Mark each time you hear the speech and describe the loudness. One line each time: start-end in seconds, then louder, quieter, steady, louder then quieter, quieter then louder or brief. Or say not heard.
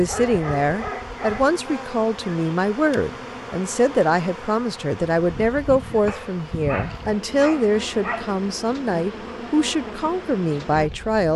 0.0-11.3 steady.